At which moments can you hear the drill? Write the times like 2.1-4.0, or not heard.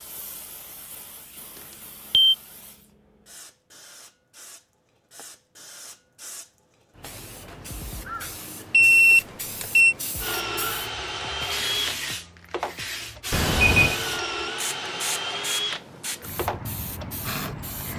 10.2-17.9.